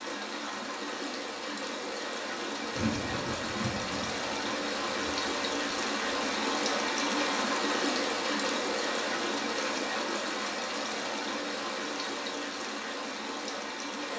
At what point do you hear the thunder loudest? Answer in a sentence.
The volume of the thunder peaks at 3 seconds.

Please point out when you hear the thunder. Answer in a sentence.
The thunder can be heard from 2.6 to 6.3 s.